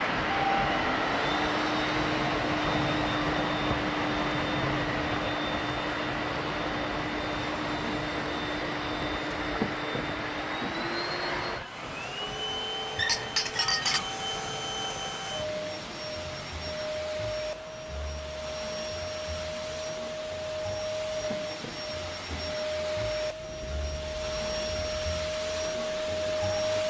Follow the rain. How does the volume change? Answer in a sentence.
The volume of the rain goes down.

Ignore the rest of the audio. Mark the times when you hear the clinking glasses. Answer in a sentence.
The clinking glasses can be heard from 12.9 to 14.1 s.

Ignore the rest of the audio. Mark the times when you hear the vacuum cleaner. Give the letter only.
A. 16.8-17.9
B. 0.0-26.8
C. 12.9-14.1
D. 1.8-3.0
B.